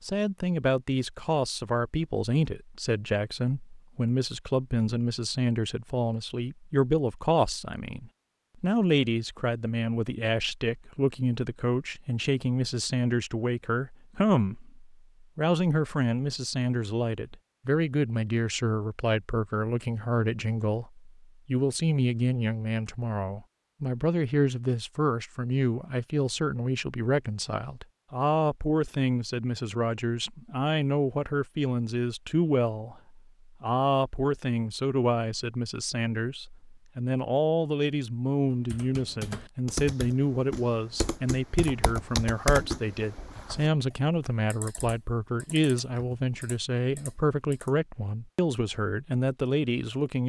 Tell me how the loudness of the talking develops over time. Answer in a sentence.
The loudness of the talking stays about the same.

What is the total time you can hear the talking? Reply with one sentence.
The talking can be heard for 50 seconds in total.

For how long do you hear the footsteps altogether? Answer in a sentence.
The footsteps can't be heard in this clip.